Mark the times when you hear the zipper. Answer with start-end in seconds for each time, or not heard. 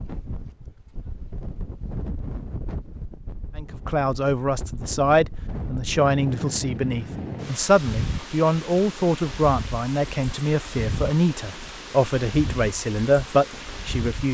not heard.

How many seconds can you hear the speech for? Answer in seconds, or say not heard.
11 s.